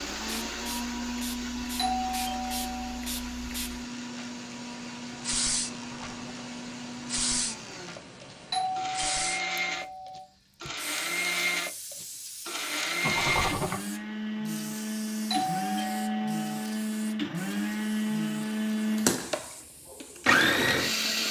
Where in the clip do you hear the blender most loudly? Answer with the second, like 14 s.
21 s.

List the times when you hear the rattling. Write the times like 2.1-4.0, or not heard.
5.7-6.5, 13.0-13.8.